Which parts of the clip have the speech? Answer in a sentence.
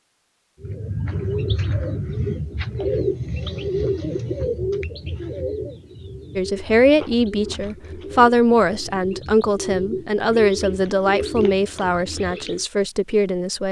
You can hear the speech from 6.3 to 13.6 s.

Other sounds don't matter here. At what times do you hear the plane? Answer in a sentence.
You can't hear the plane here.